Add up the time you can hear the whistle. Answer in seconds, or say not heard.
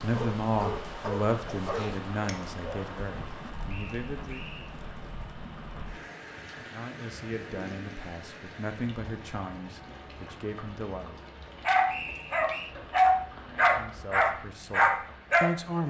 2 s.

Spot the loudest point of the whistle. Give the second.
12 s.